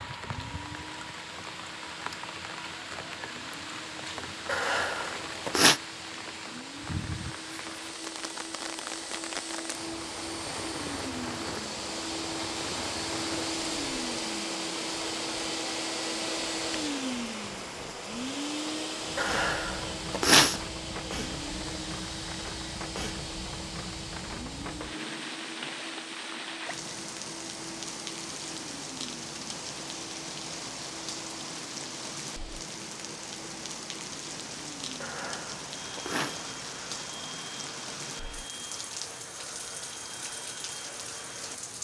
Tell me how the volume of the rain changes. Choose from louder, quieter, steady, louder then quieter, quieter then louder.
steady.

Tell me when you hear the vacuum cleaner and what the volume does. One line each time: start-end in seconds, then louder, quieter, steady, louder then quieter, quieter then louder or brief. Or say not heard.
0.2-41.7 louder then quieter.